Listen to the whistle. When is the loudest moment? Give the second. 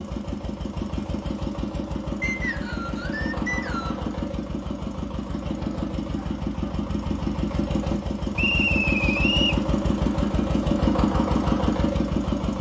9 s.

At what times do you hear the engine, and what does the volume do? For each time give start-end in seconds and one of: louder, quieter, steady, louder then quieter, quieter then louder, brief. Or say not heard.
0.0-12.5 louder.